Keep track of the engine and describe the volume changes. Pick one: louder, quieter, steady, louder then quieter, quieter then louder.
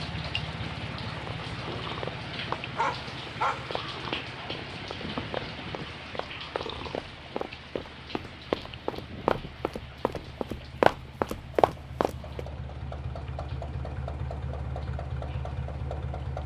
quieter then louder.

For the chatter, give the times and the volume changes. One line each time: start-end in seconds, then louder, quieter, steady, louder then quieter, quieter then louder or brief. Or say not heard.
not heard.